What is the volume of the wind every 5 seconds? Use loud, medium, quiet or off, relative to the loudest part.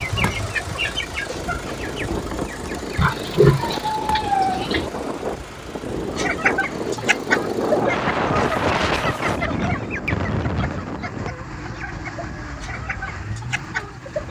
medium, loud, medium.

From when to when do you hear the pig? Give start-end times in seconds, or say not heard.
3.0-4.9, 8.3-9.4.